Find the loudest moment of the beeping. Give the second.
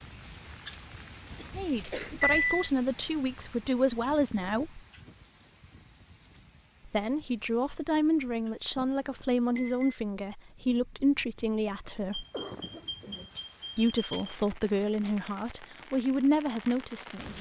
2 s.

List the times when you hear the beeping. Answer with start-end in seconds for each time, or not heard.
1.3-2.7, 8.8-10.0, 12.1-14.3.